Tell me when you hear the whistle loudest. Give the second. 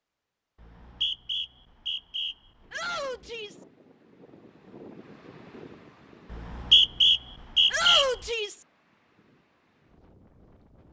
7 s.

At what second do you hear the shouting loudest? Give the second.
8 s.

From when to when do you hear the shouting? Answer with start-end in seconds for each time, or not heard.
2.7-3.6, 7.7-8.7.